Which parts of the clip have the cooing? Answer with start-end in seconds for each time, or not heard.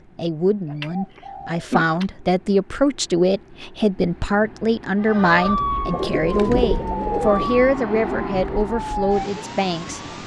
0.7-2.0, 5.8-7.6.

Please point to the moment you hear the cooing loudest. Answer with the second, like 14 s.
7 s.